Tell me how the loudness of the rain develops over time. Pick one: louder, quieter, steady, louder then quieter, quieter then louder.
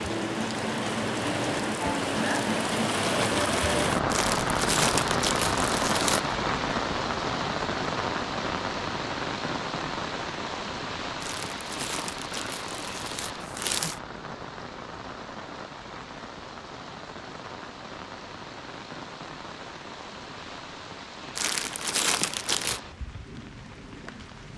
quieter.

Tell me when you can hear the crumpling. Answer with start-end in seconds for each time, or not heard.
4.1-6.2, 11.2-14.0, 21.4-22.8.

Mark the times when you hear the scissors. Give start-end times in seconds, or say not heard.
not heard.